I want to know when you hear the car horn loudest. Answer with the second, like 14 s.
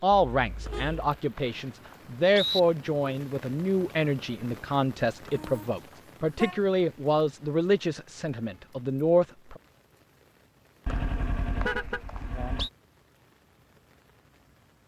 12 s.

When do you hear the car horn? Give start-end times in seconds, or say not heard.
0.3-1.1, 5.3-6.6, 10.8-12.7.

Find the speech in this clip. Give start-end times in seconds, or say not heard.
0.0-9.6.